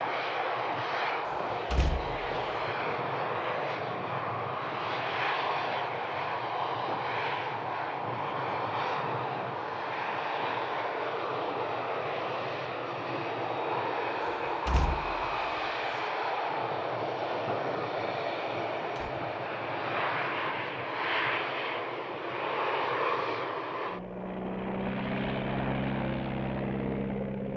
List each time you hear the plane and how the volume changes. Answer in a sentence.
The plane can be heard from 0.0 to 27.5 s, at a steady volume.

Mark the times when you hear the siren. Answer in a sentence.
The siren can't be heard in this clip.